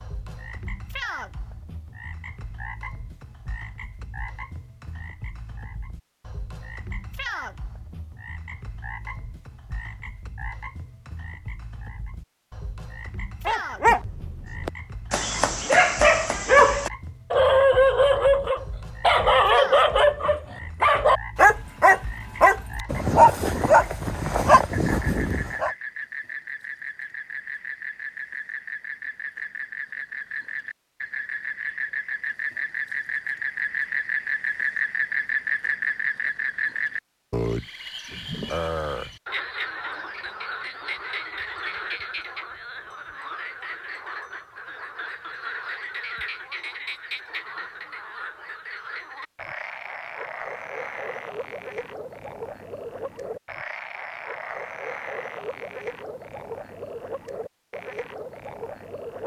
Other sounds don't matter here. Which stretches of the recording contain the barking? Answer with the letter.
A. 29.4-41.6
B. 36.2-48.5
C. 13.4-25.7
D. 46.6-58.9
C.